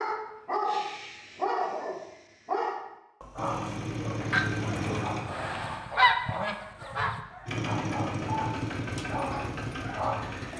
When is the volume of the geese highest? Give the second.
6 s.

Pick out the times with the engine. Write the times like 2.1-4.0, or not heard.
3.4-5.2, 7.5-10.5.